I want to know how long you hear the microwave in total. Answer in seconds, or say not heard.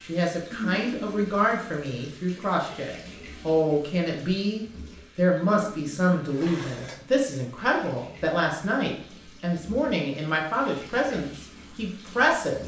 not heard.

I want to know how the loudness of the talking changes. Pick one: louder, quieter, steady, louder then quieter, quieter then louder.
steady.